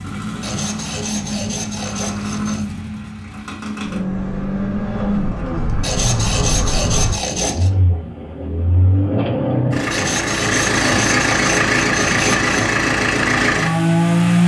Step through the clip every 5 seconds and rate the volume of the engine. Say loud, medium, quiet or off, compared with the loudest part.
medium, medium, loud.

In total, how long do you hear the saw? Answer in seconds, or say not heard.
7 s.